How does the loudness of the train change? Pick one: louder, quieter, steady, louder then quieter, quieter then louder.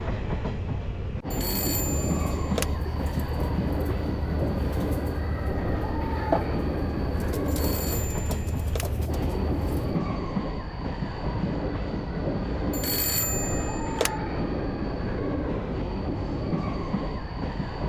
steady.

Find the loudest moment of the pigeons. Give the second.
6 s.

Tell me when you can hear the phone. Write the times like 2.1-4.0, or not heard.
1.3-2.7, 7.5-8.9, 12.7-14.2.